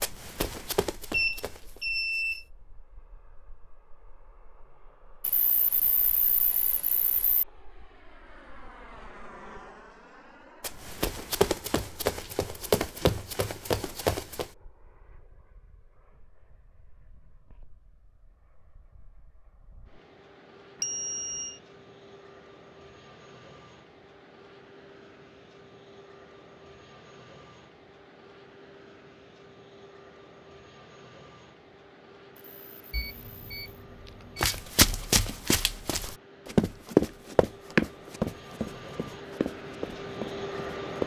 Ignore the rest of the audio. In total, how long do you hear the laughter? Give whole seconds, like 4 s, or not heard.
4 s.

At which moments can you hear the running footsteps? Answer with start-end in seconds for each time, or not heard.
0.0-1.8, 10.6-14.4, 34.4-41.0.